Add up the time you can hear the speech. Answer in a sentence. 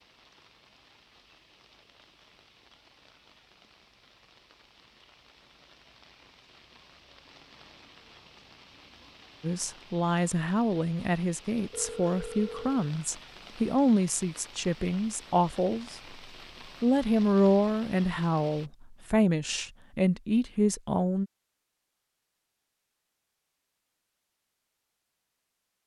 The speech can be heard for 11 seconds in total.